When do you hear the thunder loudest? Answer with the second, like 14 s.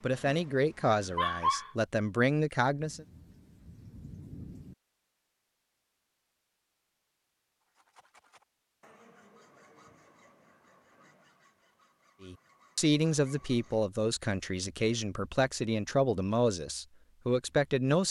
4 s.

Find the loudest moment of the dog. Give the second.
1 s.